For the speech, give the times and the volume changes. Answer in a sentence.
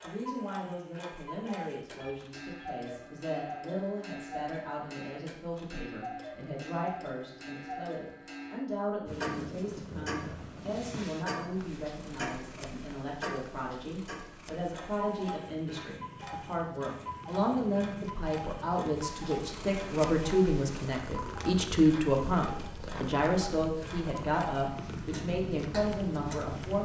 The speech can be heard from 0.0 to 26.7 s, getting louder.